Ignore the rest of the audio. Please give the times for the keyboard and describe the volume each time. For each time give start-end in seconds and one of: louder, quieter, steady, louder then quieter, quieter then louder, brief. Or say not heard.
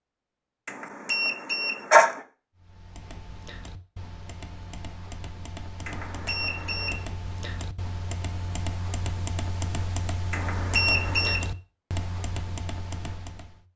2.5-13.7 louder.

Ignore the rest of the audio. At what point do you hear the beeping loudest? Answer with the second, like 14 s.
2 s.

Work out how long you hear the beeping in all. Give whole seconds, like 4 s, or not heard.
4 s.